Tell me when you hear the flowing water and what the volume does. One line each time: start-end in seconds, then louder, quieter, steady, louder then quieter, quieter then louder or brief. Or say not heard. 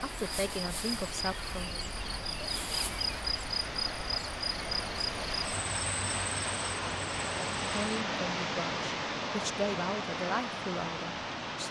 0.0-11.6 louder.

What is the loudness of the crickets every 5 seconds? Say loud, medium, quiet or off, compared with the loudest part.
loud, loud, off.